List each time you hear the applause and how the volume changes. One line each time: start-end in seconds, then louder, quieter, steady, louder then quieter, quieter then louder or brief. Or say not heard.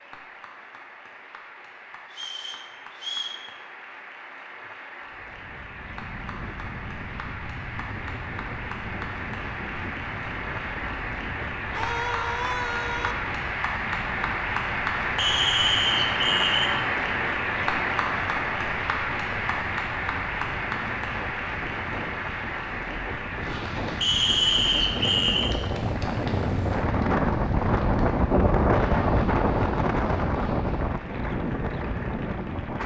0.0-32.8 louder then quieter.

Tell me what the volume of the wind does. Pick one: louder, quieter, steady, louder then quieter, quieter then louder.
louder.